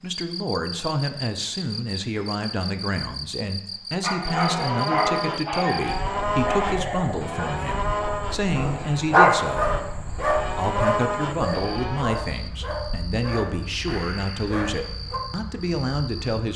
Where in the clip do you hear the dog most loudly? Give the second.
9 s.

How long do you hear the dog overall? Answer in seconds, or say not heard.
11 s.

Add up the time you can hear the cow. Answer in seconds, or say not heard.
8 s.